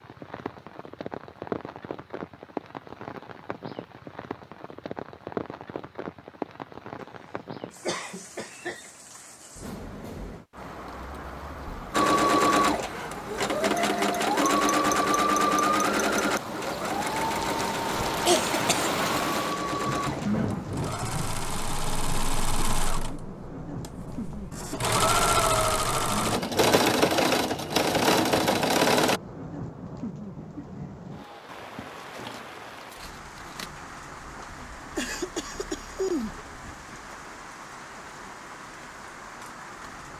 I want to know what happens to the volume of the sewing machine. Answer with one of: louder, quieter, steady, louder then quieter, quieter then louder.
quieter then louder.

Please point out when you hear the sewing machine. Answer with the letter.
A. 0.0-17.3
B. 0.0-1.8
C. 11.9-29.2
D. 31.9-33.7
C.